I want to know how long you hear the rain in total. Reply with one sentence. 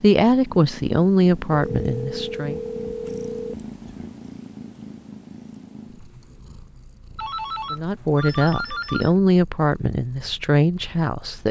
You can't hear the rain here.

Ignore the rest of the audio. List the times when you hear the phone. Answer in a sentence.
The phone can be heard from 1.7 to 4.1 s and from 7.2 to 9.2 s.